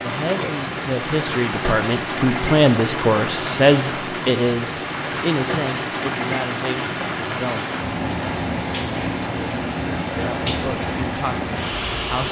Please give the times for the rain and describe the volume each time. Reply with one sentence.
The rain can be heard from 0.0 to 12.2 s, at a steady volume.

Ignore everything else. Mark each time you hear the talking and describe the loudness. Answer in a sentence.
The talking can be heard from 0.0 to 7.7 s, getting louder then quieter; and briefly from 10.1 to 12.2 s.